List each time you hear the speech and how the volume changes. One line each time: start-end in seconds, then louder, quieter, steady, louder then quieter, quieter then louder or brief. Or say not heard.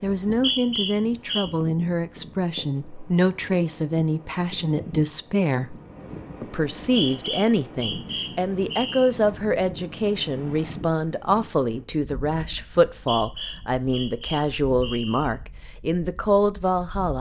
0.0-5.8 steady
6.4-17.1 steady.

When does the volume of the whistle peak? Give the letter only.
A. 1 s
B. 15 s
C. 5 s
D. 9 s
A.